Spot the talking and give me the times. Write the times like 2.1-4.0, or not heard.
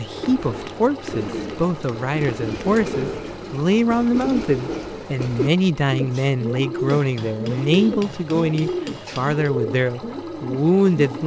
0.0-11.2.